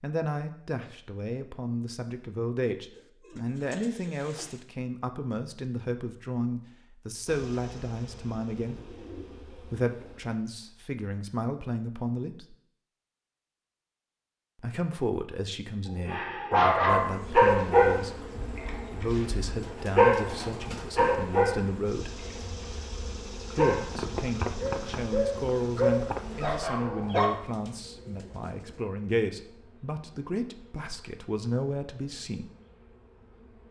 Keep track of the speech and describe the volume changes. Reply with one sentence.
The volume of the speech stays about the same.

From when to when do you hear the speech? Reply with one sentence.
The speech can be heard from 0.0 to 12.6 s, from 14.6 to 22.2 s and from 23.6 to 32.5 s.